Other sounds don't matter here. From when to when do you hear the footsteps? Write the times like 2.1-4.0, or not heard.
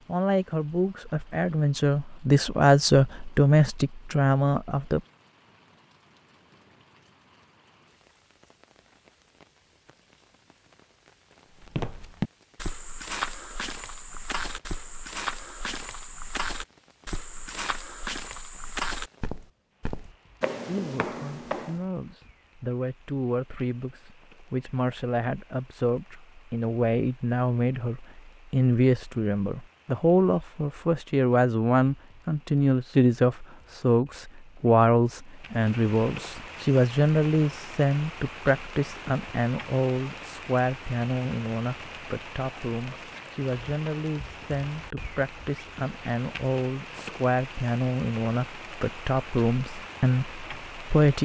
11.6-21.9.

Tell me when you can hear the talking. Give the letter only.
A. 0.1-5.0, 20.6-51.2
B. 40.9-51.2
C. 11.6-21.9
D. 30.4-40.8
A.